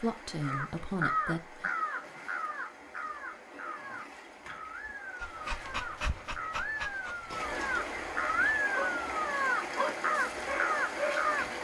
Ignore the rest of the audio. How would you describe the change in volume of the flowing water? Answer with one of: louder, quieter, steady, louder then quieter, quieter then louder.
louder.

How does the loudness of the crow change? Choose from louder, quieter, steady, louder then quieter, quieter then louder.
quieter then louder.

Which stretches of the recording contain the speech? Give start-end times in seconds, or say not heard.
0.0-1.7.